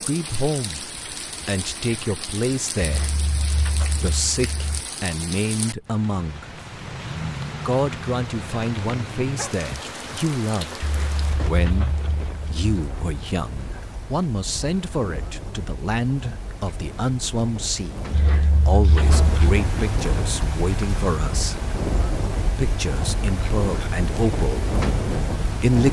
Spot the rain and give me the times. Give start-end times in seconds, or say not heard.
0.0-25.8.